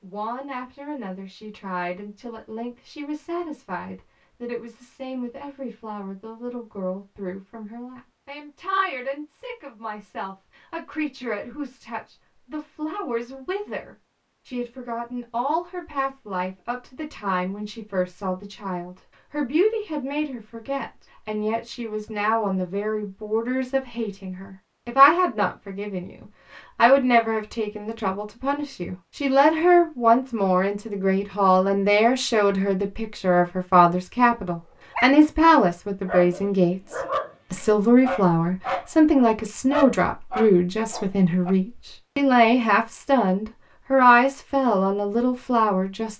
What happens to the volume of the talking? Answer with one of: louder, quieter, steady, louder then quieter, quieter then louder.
louder.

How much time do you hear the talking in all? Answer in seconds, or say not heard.
46 s.